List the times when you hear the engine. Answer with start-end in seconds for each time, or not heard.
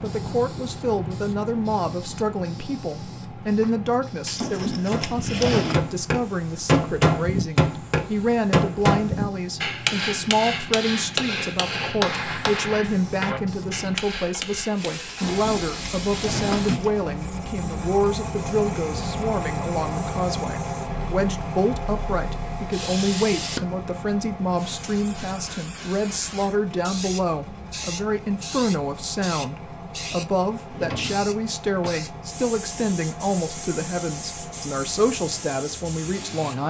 15.2-36.6.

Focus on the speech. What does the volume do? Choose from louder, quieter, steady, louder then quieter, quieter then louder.
steady.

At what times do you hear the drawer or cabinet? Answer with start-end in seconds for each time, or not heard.
4.2-5.8, 15.1-16.9, 30.6-32.0.